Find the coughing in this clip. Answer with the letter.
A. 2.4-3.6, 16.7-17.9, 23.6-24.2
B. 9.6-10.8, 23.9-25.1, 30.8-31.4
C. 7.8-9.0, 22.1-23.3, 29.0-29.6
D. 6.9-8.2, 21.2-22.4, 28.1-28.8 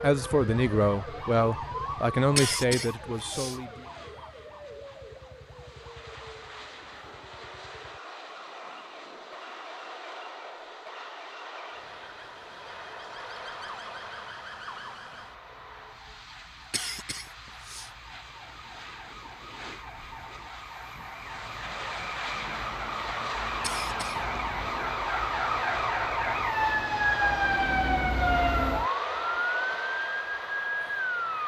A.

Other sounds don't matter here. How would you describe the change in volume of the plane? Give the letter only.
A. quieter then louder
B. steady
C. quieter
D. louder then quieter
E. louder
E.